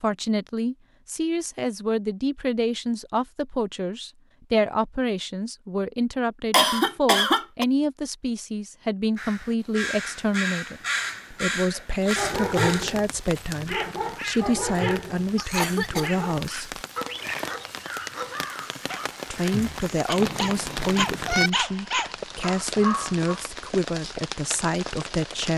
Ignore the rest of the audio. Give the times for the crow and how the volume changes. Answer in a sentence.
You can hear the crow from 9.2 to 19.9 s, getting quieter.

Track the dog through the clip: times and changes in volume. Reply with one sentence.
The dog can be heard from 11.7 to 23.4 s, getting quieter then louder.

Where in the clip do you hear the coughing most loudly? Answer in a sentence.
The loudest moment of the coughing is at 7 seconds.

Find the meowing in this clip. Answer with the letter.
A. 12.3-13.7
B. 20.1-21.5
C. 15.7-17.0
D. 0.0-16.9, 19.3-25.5
B.